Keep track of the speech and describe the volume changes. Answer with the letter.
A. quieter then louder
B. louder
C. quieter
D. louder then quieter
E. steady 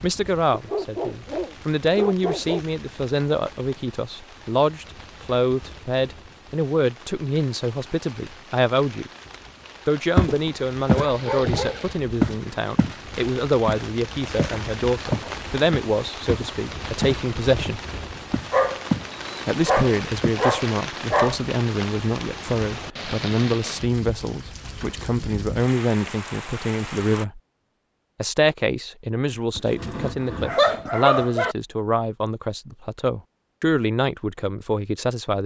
E.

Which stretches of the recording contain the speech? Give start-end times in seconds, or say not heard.
0.0-9.1, 9.8-17.8, 19.4-27.4, 28.2-35.4.